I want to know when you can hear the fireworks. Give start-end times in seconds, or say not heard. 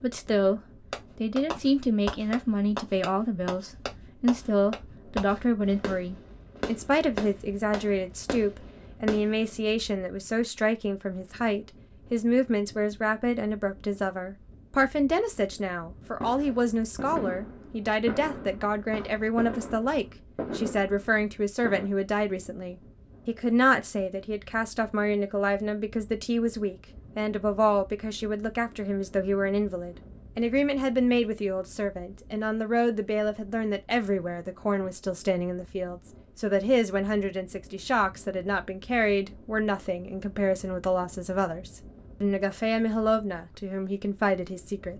0.9-9.5, 16.2-21.9.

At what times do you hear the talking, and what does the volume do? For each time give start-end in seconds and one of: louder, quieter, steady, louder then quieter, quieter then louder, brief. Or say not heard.
0.0-44.9 steady.